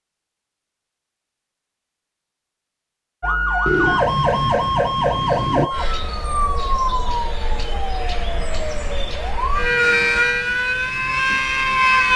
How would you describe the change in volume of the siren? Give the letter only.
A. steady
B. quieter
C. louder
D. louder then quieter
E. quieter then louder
E.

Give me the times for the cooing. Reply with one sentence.
You can hear the cooing from 3.6 to 5.7 s.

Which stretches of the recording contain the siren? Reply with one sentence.
You can hear the siren from 3.2 to 12.1 s.